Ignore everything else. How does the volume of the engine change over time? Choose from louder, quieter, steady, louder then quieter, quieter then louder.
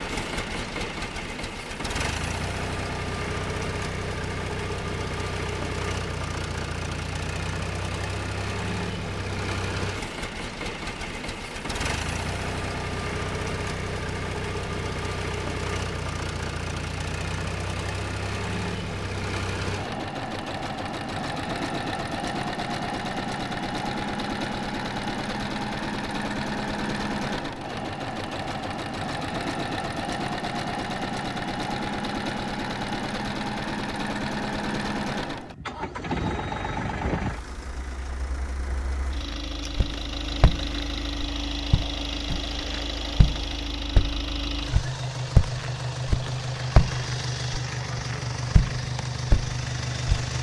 steady.